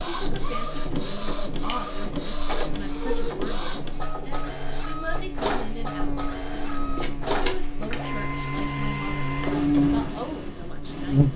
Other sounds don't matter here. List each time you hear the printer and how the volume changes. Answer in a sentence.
You can hear the printer from 0.0 to 11.3 s, at a steady volume.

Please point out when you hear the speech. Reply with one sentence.
The speech can be heard from 0.0 to 6.2 s and from 7.4 to 11.3 s.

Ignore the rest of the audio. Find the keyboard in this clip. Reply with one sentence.
The keyboard can't be heard in this clip.